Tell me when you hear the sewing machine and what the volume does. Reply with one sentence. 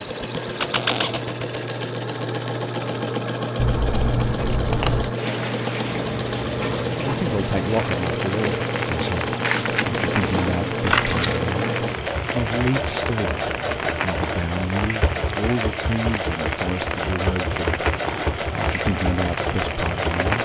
You can hear the sewing machine from 0.0 to 20.3 s, at a steady volume.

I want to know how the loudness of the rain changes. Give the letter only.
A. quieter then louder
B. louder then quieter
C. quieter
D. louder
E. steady
E.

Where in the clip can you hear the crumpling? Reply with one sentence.
You can hear the crumpling from 9.4 to 10.6 s.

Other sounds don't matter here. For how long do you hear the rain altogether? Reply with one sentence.
The rain can be heard for 15 seconds in total.